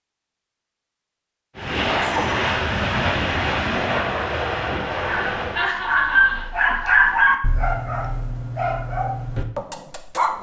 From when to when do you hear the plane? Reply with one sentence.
You can hear the plane from 1.6 to 5.7 s.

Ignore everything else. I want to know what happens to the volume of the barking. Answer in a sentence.
The loudness of the barking goes down.